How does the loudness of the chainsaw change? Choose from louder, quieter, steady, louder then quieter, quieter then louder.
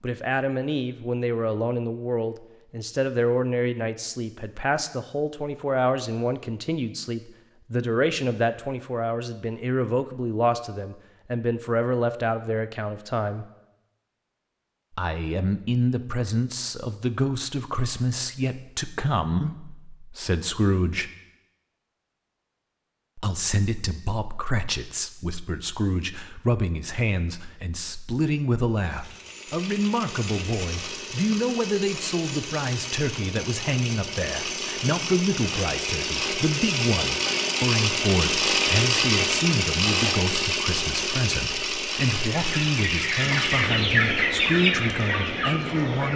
louder then quieter.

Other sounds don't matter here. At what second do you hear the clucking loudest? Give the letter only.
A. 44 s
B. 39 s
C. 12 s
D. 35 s
A.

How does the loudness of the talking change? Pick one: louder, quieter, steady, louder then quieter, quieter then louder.
steady.